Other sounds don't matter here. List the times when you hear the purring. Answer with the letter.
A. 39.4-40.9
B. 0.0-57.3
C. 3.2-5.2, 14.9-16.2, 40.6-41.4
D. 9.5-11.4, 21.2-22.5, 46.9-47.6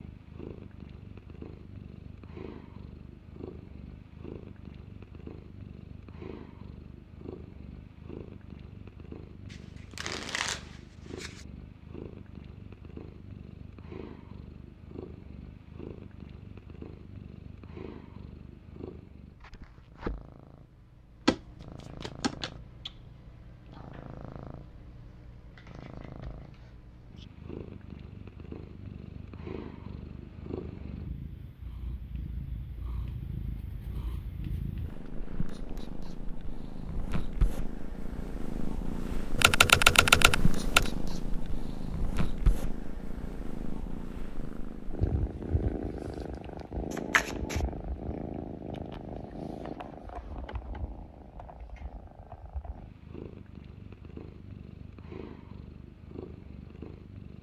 B.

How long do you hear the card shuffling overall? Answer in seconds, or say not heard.
4 s.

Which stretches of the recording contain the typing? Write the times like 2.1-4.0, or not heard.
39.4-40.9.